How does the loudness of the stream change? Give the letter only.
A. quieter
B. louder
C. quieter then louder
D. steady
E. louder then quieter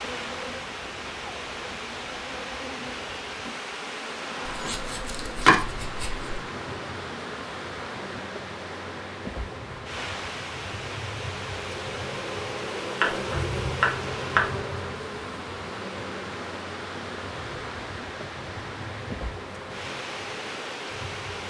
D.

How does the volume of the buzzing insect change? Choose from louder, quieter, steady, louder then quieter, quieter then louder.
louder then quieter.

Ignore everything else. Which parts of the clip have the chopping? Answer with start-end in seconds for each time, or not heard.
4.5-6.2, 13.0-14.5.